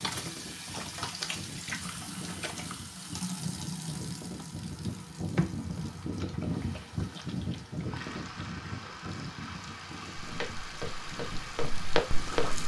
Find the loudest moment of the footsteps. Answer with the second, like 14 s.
12 s.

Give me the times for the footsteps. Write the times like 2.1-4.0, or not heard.
10.2-12.6.